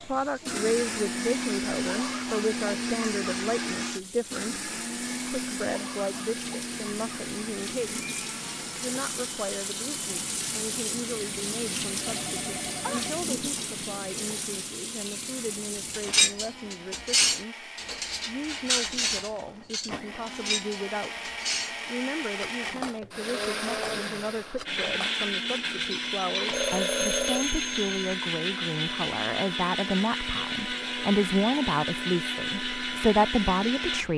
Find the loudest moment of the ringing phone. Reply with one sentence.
The volume of the ringing phone peaks at 27 seconds.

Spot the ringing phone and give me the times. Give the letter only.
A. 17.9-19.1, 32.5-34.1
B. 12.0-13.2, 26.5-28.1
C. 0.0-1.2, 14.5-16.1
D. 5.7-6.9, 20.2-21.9
B.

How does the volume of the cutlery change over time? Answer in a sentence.
The loudness of the cutlery goes down.